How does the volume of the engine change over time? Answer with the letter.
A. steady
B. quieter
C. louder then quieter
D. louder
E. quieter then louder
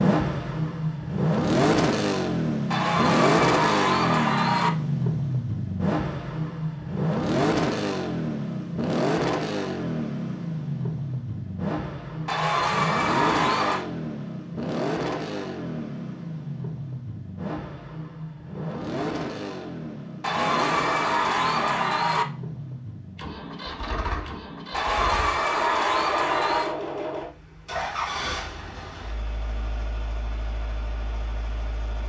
B.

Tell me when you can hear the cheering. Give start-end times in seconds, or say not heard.
2.7-4.7, 12.2-13.8, 20.2-22.2, 24.7-26.8.